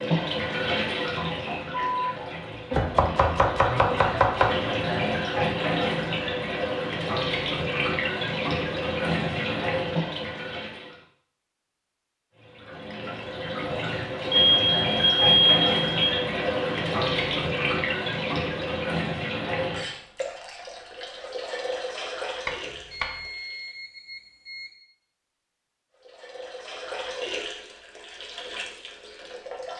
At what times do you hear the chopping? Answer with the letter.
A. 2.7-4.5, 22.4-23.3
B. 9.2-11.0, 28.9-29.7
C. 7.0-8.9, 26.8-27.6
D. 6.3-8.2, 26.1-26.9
A.